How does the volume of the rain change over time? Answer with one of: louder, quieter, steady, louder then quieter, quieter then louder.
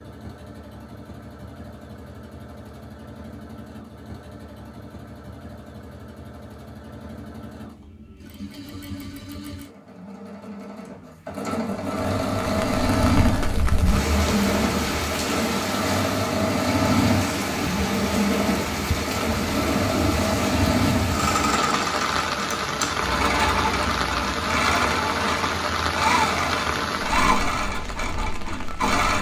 steady.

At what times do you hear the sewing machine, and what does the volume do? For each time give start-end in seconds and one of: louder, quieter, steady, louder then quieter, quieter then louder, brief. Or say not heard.
0.0-29.1 louder.